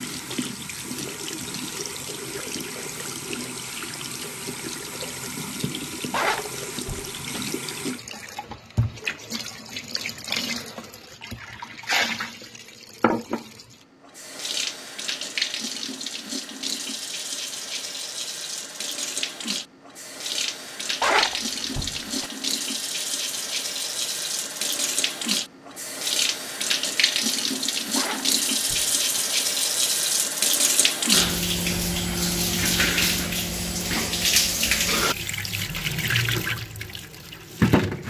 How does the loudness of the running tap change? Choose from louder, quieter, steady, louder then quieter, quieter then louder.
louder.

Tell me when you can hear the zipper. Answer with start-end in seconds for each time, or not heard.
6.1-7.4, 21.0-22.3, 27.9-28.9.